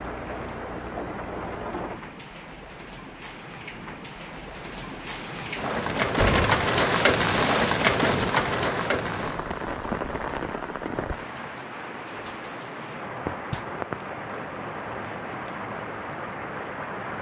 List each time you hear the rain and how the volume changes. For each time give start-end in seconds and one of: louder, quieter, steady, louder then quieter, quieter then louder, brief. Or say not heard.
0.0-17.1 louder then quieter.